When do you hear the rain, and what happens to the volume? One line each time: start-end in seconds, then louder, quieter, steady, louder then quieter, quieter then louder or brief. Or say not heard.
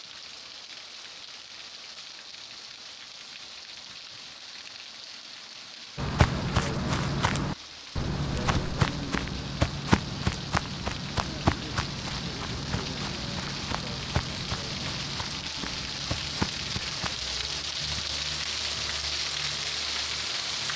0.0-20.7 louder.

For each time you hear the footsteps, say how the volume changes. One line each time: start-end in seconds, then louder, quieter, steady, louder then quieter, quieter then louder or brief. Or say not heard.
6.0-17.1 quieter.